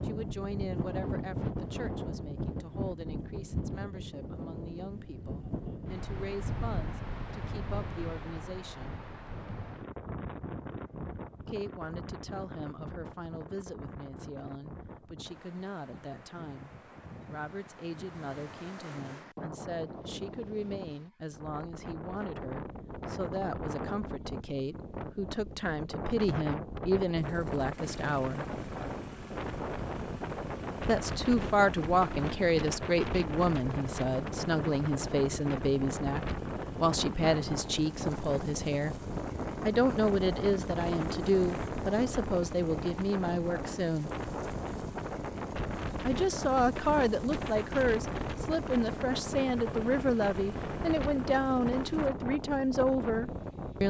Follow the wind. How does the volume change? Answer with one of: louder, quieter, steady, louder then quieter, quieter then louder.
quieter then louder.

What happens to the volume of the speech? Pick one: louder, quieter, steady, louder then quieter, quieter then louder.
louder.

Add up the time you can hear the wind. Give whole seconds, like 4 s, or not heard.
54 s.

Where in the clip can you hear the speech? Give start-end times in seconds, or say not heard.
0.0-9.0, 11.4-28.4, 30.9-39.0, 39.6-44.1, 46.0-53.8.